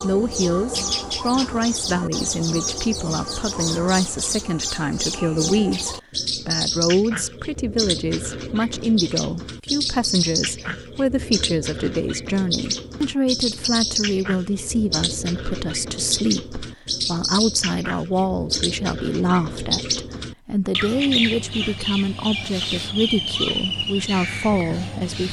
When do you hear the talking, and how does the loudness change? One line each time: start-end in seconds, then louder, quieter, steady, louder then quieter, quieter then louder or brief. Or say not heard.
0.0-25.2 steady.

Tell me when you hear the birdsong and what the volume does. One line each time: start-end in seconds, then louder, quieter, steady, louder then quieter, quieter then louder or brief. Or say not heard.
0.0-25.2 steady.